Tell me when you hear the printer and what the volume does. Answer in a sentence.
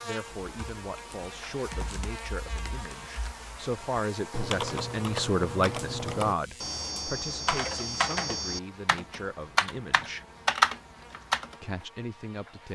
You can't hear the printer here.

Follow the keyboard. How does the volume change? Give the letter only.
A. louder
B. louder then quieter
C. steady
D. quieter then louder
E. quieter
A.